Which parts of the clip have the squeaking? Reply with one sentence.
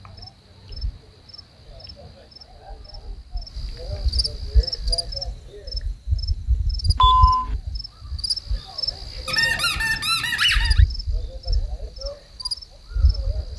The squeaking can be heard from 9.2 to 10.8 s.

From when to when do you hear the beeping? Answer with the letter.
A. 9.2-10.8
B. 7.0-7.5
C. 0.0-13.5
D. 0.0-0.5
B.